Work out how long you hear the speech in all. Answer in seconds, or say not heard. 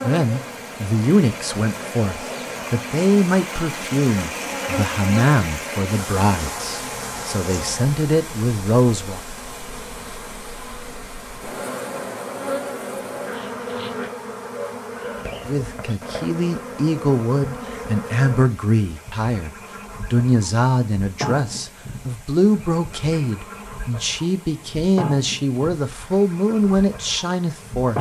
22 s.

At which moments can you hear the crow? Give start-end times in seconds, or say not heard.
not heard.